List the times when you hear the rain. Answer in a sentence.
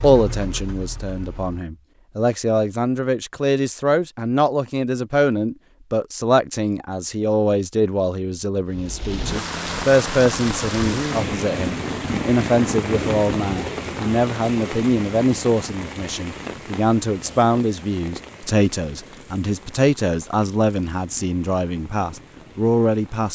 The rain can be heard from 8.7 to 23.3 s.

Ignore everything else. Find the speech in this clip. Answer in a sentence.
You can hear the speech from 0.0 to 23.3 s.